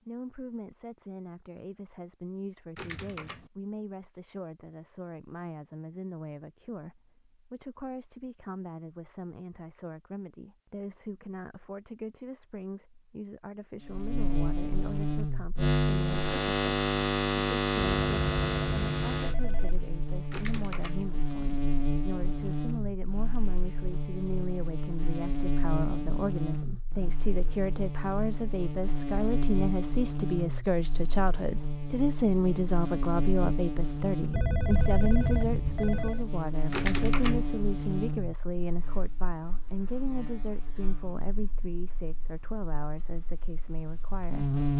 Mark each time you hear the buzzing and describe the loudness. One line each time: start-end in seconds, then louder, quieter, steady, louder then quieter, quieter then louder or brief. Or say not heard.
13.8-44.7 quieter.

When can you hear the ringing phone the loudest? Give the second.
35 s.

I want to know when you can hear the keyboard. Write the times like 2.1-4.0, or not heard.
2.8-3.5, 20.3-21.1, 36.7-37.5.